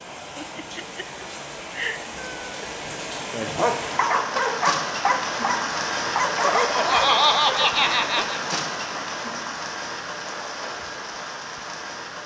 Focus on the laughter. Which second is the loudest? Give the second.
7 s.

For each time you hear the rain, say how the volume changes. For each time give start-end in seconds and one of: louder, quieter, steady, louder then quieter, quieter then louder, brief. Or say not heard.
0.0-12.2 louder then quieter.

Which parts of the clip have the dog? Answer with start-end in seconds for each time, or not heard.
3.3-8.2.